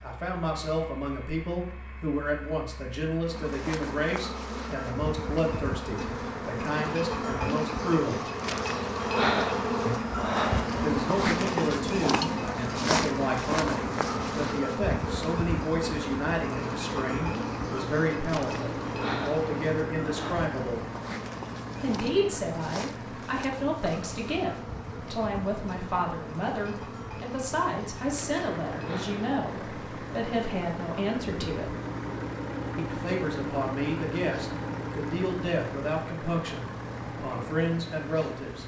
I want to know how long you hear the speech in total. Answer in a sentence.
You can hear the speech for 34 seconds altogether.